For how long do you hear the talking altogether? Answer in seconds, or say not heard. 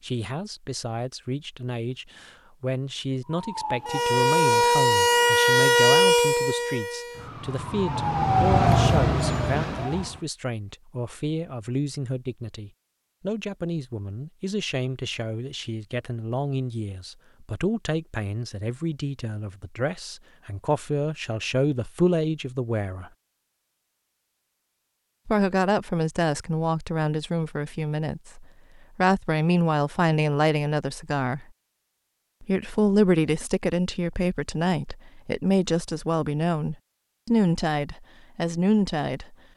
36 s.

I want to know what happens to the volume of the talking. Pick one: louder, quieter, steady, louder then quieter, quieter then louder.
louder.